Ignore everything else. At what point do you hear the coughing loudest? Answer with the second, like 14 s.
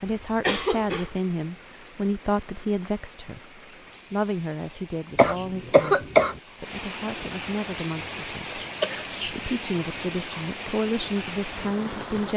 6 s.